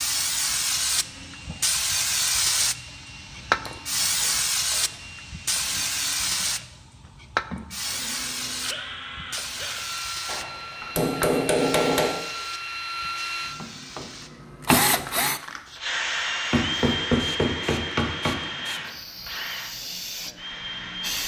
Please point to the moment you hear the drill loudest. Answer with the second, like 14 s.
15 s.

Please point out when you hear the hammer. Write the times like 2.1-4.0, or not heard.
3.6-5.0, 10.2-12.1, 16.5-18.4.